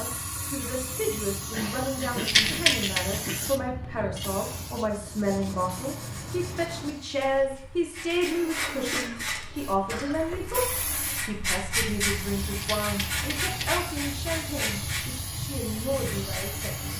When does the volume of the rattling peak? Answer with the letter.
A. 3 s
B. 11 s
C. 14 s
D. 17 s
A.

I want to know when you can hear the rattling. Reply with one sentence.
You can hear the rattling from 2.2 to 3.0 s and from 12.6 to 13.8 s.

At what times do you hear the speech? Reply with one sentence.
The speech can be heard from 0.0 to 16.9 s.